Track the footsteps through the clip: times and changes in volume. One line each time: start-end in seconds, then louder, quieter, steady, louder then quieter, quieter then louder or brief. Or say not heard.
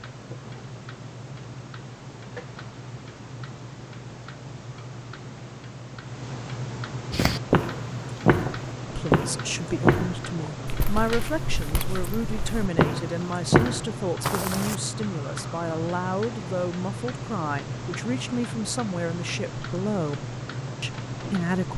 7.1-14.8 quieter then louder.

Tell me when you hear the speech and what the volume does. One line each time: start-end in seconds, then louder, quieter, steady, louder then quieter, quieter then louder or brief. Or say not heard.
8.9-21.7 steady.